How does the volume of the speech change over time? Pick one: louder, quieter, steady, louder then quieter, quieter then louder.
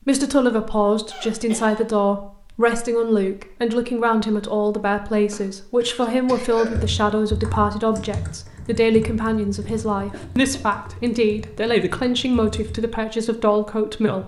steady.